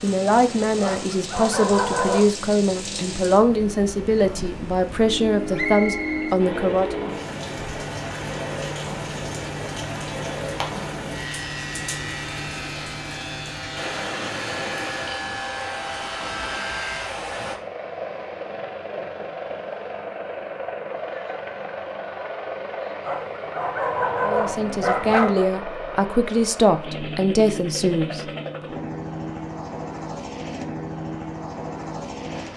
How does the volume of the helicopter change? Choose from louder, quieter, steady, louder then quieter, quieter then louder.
steady.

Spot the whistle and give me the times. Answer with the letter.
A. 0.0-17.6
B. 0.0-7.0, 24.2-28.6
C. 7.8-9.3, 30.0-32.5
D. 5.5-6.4
D.